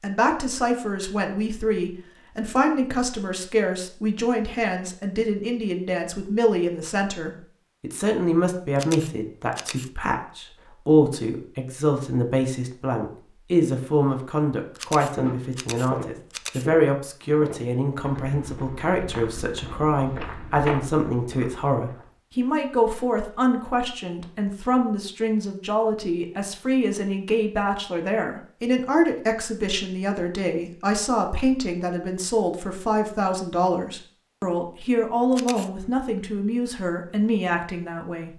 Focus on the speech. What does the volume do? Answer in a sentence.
The loudness of the speech stays about the same.